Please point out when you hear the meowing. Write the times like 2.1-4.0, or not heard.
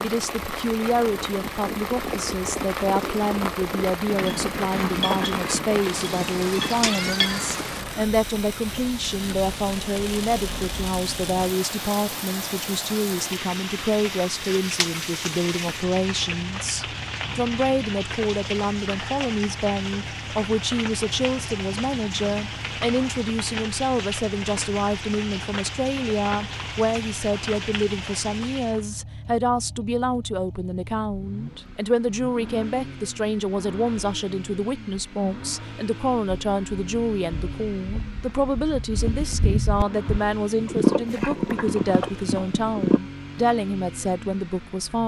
not heard.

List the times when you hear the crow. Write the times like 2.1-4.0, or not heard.
not heard.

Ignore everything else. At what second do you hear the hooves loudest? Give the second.
41 s.